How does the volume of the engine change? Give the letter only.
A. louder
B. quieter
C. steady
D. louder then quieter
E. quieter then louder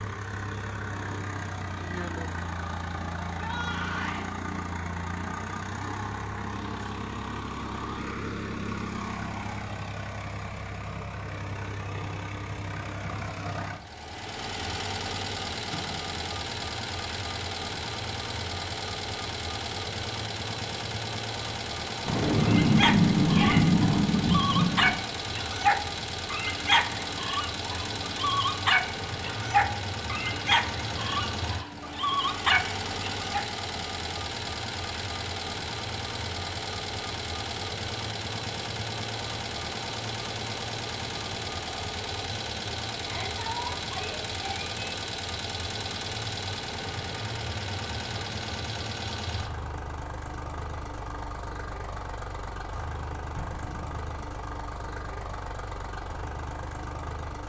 C.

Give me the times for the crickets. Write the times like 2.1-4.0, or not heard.
not heard.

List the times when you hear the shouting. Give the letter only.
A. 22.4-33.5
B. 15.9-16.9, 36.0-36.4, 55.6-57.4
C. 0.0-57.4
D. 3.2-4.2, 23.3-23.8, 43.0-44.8
D.